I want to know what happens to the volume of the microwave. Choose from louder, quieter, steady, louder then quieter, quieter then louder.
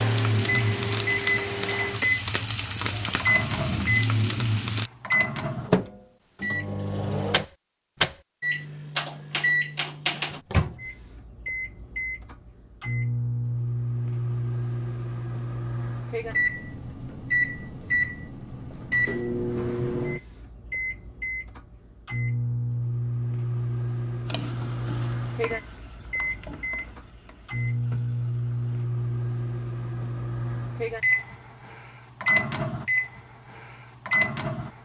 steady.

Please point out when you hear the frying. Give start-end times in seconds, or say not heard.
0.0-4.9, 24.2-28.9.